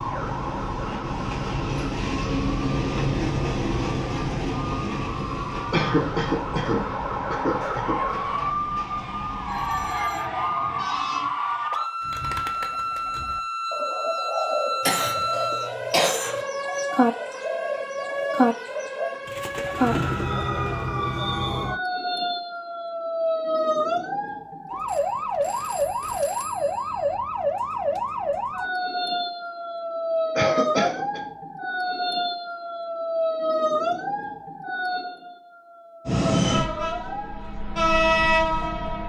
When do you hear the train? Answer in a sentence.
The train can be heard from 0.0 to 11.3 s and from 36.0 to 39.0 s.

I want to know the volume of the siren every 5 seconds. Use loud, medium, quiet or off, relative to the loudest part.
medium, loud, loud, loud, loud, loud, loud, medium.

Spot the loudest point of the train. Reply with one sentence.
The loudest moment of the train is at 38 seconds.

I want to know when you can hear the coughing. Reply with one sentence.
The coughing can be heard from 5.7 to 8.0 s, from 14.8 to 16.4 s and from 30.4 to 31.2 s.